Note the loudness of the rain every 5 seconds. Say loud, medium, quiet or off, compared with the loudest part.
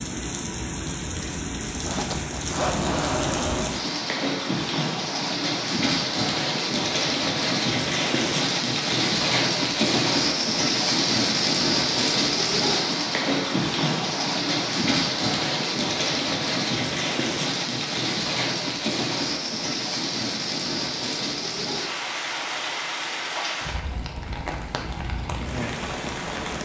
medium, loud, loud, loud, medium, medium.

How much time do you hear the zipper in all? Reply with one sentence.
You can hear the zipper for 2 seconds altogether.